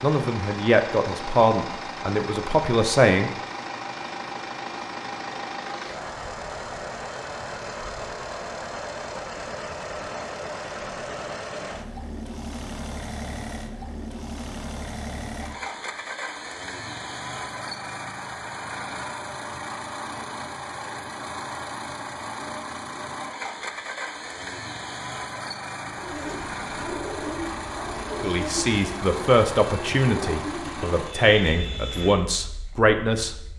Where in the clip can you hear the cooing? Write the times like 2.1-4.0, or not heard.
25.9-32.1.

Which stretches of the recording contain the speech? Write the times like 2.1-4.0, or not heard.
0.0-3.3, 28.2-33.4.